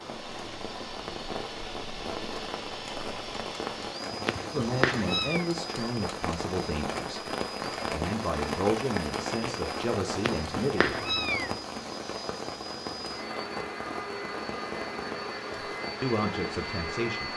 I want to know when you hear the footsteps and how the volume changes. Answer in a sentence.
The footsteps can't be heard in this clip.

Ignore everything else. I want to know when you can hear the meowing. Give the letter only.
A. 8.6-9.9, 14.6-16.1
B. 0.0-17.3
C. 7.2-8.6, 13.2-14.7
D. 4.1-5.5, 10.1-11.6
D.